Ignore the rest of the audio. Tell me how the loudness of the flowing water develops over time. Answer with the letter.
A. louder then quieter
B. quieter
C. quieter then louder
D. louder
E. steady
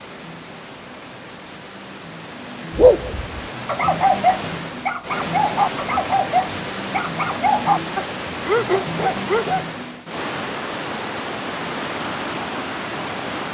D.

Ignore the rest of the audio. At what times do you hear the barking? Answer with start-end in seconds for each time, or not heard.
2.8-9.7.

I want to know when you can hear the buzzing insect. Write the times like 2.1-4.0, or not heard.
not heard.